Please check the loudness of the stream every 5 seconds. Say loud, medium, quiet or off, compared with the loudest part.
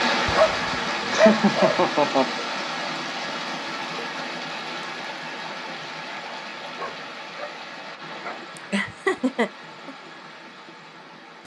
loud, medium, quiet.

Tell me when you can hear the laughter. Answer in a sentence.
The laughter can be heard from 1.1 to 2.2 s and from 8.6 to 9.9 s.